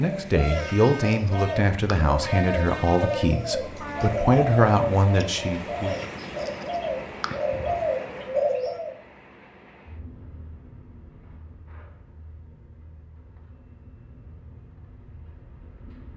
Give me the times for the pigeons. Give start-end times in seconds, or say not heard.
0.1-8.9.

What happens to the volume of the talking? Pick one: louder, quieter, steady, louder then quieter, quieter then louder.
steady.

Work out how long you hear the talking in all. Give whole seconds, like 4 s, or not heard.
6 s.